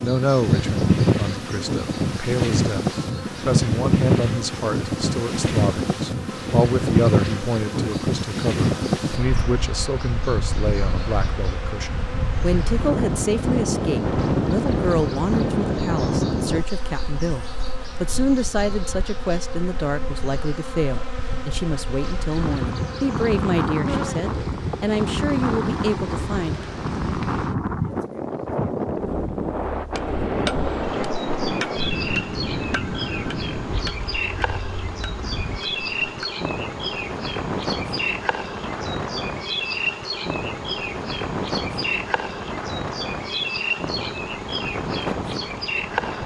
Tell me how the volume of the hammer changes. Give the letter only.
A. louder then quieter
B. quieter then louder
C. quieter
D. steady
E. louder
C.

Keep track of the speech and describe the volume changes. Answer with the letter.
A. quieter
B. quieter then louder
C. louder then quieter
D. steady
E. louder
D.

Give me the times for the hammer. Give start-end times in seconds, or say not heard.
29.9-36.3.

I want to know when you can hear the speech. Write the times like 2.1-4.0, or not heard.
0.0-26.6.